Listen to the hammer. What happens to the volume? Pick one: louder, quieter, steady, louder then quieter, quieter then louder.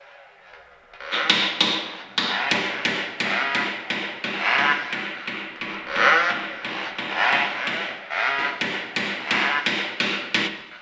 quieter then louder.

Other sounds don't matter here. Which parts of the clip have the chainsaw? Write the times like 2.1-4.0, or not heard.
0.0-10.7.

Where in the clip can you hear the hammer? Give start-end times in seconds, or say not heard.
1.1-10.5.